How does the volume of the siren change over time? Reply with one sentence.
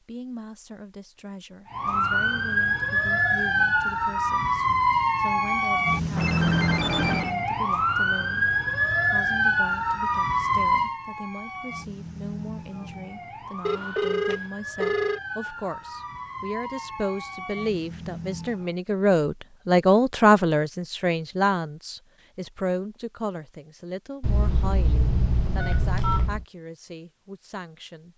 The loudness of the siren goes down.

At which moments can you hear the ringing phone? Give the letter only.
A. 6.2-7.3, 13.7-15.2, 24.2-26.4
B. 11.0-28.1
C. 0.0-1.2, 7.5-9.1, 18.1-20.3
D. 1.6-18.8
A.